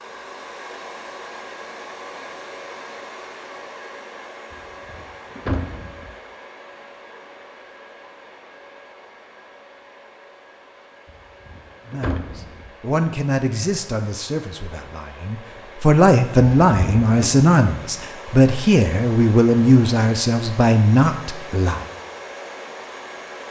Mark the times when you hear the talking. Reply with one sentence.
You can hear the talking from 11.8 to 21.9 s.